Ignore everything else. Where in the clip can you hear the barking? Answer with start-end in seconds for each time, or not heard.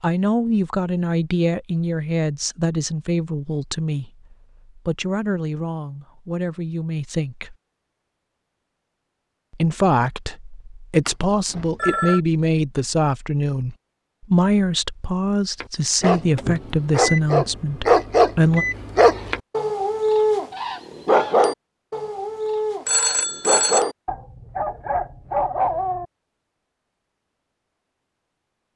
15.6-26.1.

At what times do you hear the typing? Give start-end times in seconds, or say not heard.
not heard.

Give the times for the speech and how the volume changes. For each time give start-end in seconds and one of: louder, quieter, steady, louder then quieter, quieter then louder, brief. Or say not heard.
0.0-7.5 quieter
9.5-18.6 steady.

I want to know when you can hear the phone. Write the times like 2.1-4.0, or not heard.
11.1-12.2, 22.9-23.9.